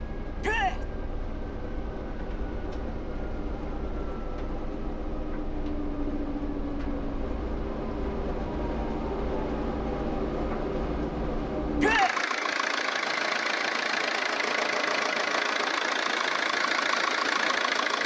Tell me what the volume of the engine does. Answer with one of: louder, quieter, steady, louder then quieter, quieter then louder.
louder.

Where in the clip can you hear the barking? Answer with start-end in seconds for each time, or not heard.
not heard.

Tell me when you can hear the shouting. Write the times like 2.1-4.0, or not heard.
0.4-0.8, 11.8-12.2.